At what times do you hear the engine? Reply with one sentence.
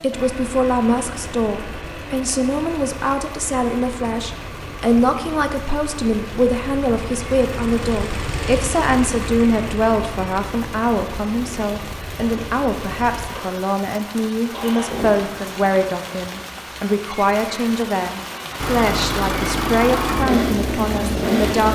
You can hear the engine from 0.0 to 15.8 s and from 18.6 to 21.6 s.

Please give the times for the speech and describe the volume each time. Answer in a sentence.
You can hear the speech from 0.0 to 21.6 s, at a steady volume.